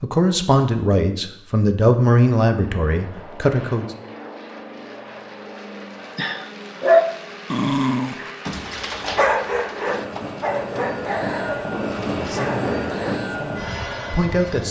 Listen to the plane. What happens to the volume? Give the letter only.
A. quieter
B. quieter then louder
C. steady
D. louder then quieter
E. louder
E.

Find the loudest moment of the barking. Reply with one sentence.
The loudest moment of the barking is at 7 seconds.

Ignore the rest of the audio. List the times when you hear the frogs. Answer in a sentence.
You can't hear the frogs here.